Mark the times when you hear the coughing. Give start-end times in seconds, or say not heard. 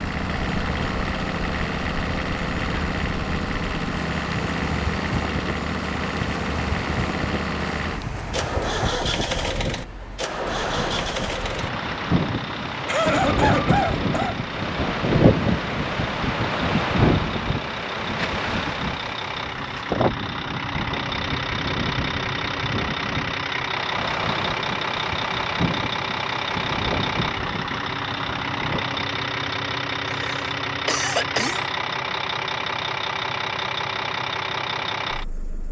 12.8-14.4, 30.1-31.6.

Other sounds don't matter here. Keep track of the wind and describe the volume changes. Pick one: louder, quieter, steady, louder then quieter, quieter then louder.
louder then quieter.